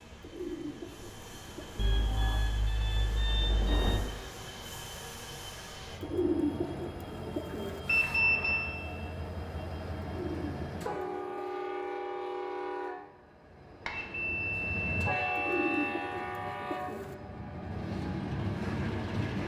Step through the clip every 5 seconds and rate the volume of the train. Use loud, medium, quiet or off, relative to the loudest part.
medium, medium, loud, loud.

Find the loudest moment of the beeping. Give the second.
8 s.